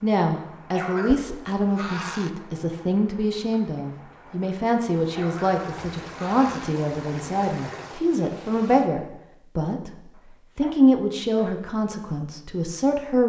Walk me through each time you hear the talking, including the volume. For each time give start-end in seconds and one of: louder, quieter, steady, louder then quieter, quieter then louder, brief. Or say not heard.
0.0-13.2 steady.